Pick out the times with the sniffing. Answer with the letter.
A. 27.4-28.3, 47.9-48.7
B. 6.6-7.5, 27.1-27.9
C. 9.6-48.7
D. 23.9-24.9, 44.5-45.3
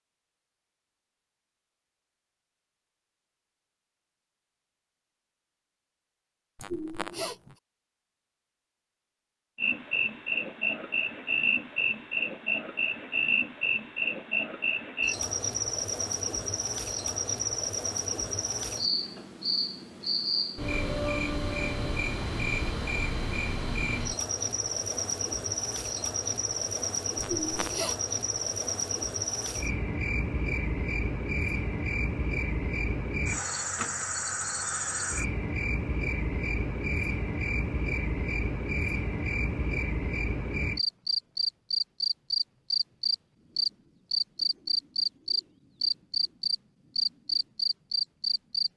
B.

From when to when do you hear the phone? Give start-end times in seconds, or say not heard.
not heard.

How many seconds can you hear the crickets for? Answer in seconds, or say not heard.
39 s.